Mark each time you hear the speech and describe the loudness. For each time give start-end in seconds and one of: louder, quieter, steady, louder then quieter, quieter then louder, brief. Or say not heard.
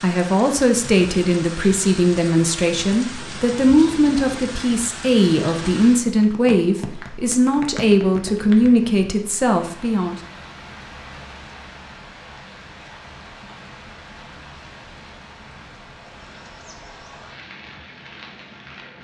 0.0-10.2 steady.